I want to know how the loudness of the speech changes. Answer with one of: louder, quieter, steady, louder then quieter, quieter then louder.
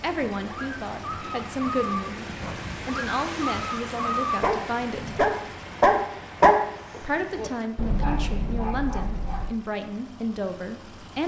steady.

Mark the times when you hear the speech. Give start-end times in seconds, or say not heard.
0.0-5.2, 7.0-11.2.